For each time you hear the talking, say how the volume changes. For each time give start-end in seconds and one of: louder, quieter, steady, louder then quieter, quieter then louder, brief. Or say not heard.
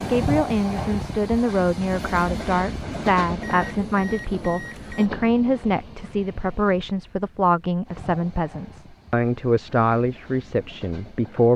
0.1-11.5 steady.